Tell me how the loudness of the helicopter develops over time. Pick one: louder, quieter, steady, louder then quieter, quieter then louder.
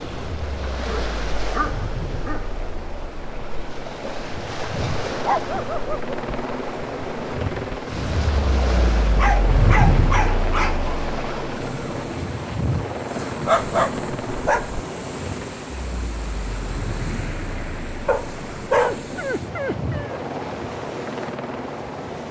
louder then quieter.